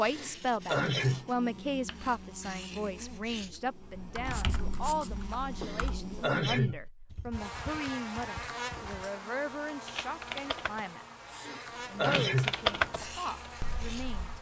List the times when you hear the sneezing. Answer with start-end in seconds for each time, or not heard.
0.1-1.2, 5.6-6.8, 11.3-12.6.